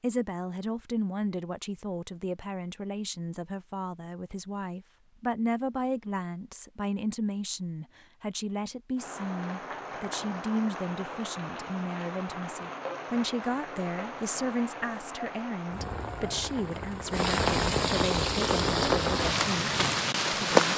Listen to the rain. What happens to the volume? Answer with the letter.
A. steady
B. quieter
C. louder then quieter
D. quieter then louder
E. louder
E.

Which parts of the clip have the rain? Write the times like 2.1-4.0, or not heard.
8.9-20.7.